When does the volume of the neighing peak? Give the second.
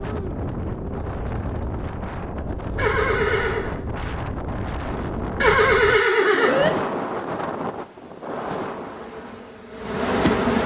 6 s.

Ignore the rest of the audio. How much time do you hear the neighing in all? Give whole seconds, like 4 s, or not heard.
2 s.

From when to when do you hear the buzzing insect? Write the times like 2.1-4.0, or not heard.
8.7-10.6.